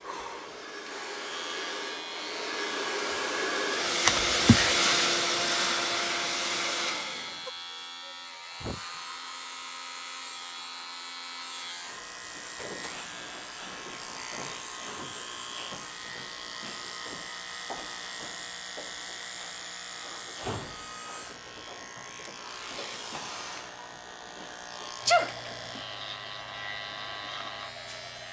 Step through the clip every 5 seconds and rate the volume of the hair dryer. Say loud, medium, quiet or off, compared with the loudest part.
loud, loud, quiet, quiet, quiet, quiet.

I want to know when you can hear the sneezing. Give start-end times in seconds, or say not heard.
4.0-4.8, 25.1-25.8.